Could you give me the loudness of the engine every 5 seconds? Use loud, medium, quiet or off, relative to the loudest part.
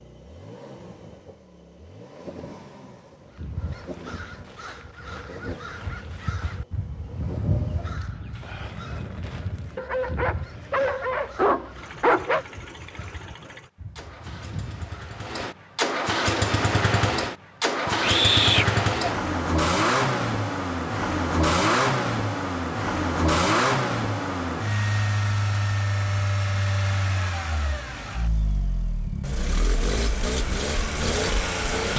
quiet, quiet, quiet, loud, loud, medium, loud.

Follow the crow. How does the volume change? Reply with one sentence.
The loudness of the crow goes up, then down.